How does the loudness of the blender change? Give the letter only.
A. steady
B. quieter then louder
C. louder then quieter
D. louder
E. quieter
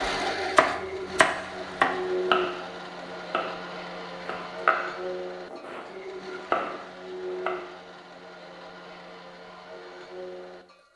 E.